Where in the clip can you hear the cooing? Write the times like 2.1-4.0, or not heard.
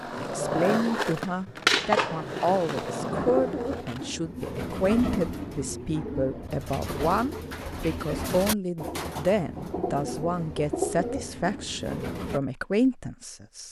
3.1-12.4.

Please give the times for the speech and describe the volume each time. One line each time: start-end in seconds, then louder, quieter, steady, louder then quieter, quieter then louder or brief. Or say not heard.
0.2-13.6 steady.